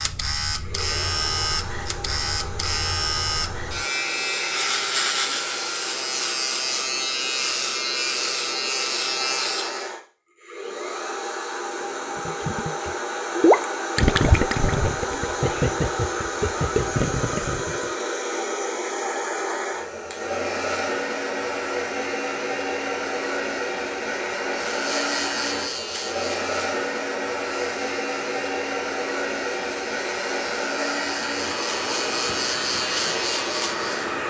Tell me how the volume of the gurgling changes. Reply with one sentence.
The volume of the gurgling goes down.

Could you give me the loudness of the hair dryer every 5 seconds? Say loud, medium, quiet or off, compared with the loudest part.
medium, medium, loud, loud, loud, loud, loud.